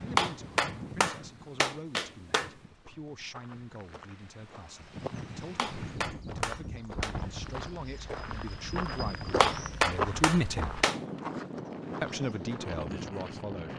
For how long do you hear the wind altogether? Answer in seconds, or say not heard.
14 s.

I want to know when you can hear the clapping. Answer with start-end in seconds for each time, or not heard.
0.1-2.5, 5.5-7.2, 9.4-11.0.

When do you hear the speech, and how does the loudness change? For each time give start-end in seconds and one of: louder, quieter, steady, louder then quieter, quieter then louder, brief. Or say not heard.
0.0-10.8 louder
12.0-13.7 brief.